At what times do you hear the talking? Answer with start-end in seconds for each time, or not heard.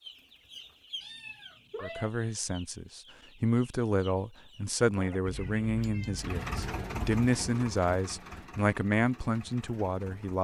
1.8-10.4.